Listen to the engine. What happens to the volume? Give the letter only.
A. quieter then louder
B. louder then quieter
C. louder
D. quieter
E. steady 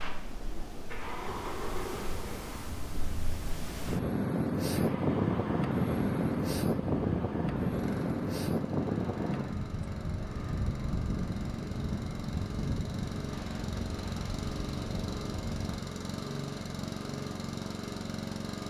C.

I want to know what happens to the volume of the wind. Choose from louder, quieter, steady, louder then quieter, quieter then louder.
louder then quieter.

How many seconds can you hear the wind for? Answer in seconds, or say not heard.
16 s.